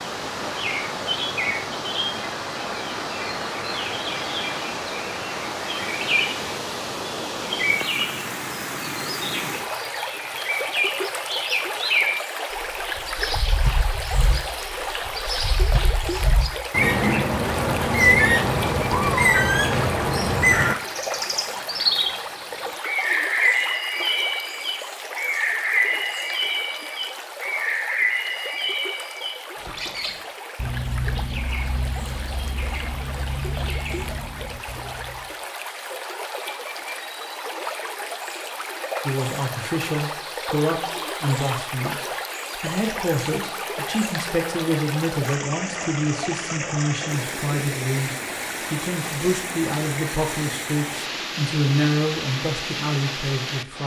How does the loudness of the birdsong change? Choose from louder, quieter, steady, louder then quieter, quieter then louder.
louder then quieter.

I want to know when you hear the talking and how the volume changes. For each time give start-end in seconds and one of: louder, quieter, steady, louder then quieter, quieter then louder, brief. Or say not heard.
39.0-53.8 steady.